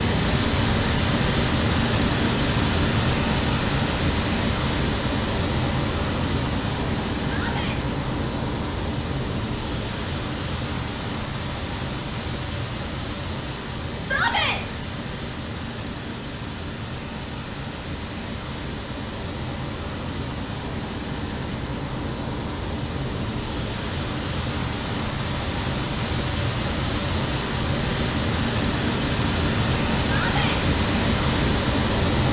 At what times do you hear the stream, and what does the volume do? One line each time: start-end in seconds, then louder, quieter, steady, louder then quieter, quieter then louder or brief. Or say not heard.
0.0-32.2 quieter then louder.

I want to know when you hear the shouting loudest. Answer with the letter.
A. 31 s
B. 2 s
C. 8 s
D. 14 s
D.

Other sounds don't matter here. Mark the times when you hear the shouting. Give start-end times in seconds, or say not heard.
7.2-7.8, 14.0-14.6, 30.1-30.6.